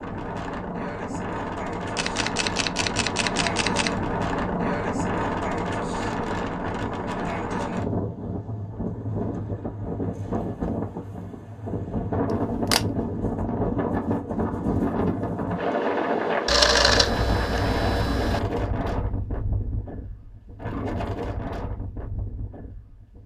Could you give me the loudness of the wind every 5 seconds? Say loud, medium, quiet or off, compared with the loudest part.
loud, loud, loud, loud, medium.